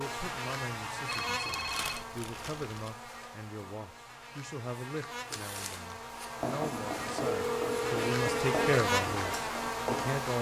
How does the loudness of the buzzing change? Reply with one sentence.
The volume of the buzzing goes down, then up.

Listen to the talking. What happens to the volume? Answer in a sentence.
The volume of the talking goes up.